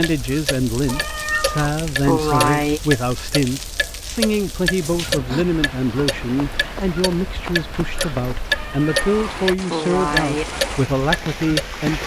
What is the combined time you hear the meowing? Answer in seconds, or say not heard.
4 s.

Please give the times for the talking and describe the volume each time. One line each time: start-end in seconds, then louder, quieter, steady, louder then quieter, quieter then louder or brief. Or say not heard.
0.0-12.0 steady.